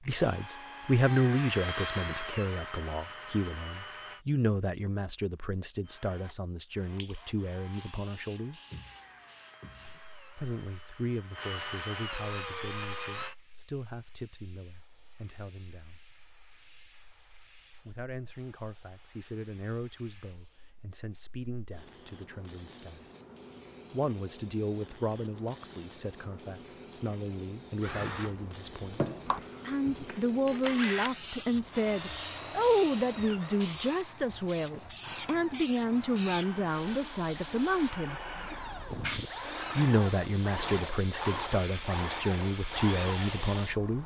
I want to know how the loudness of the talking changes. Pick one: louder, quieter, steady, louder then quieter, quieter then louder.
quieter then louder.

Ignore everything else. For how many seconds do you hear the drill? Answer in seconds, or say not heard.
28 s.